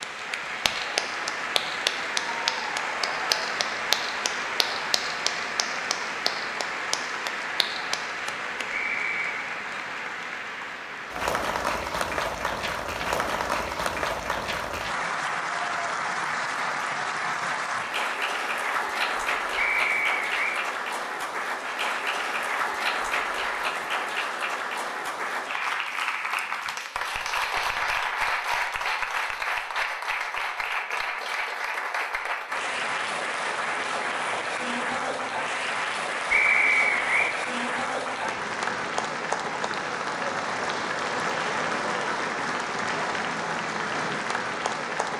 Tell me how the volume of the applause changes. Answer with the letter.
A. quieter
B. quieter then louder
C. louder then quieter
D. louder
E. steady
E.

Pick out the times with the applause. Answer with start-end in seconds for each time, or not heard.
0.0-45.1.